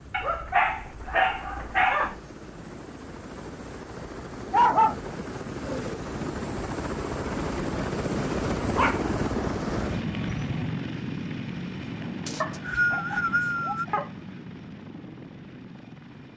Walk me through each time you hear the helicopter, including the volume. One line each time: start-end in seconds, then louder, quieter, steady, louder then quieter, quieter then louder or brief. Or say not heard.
0.0-16.3 louder then quieter.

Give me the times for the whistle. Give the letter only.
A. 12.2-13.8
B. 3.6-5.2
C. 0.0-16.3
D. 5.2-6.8
A.